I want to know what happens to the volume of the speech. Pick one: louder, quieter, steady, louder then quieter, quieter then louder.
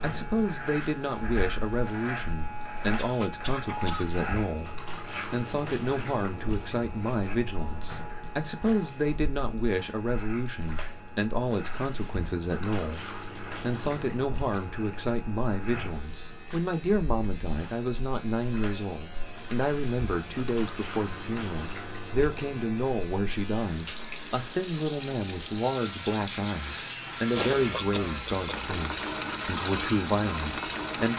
steady.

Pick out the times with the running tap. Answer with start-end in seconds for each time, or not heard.
0.0-31.1.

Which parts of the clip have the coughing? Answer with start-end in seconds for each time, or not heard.
3.0-4.2, 27.4-28.7.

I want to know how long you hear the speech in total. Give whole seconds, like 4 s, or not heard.
31 s.